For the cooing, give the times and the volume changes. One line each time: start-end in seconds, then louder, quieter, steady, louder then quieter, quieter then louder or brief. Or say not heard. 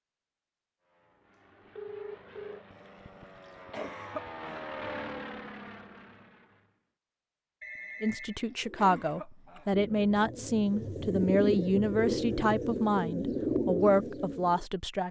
8.6-14.7 louder.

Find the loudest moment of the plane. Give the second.
5 s.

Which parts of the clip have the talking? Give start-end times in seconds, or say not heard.
8.0-15.0.